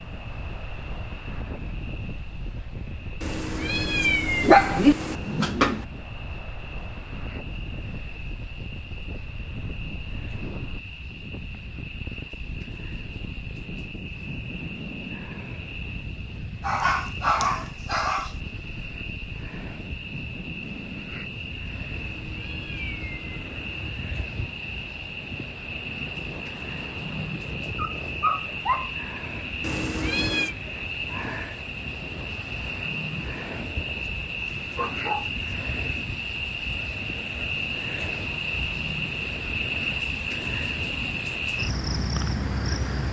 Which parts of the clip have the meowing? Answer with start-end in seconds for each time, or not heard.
3.2-5.2, 21.9-23.9, 29.6-30.6.